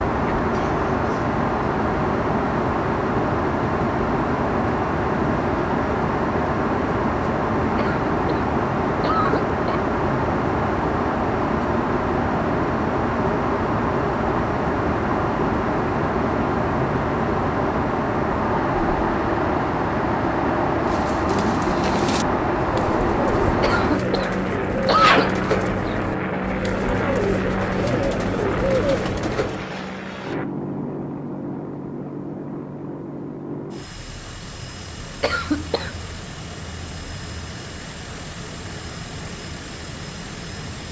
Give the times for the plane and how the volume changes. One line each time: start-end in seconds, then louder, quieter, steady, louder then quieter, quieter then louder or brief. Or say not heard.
0.0-40.8 quieter.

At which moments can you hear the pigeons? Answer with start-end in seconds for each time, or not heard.
20.8-29.6.